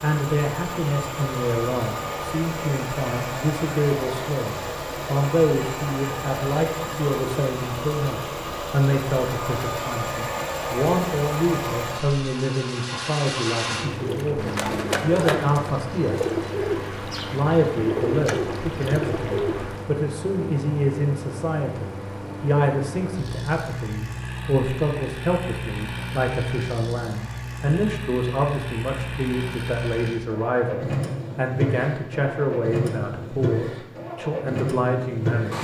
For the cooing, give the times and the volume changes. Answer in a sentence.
You can hear the cooing from 13.8 to 19.9 s, at a steady volume.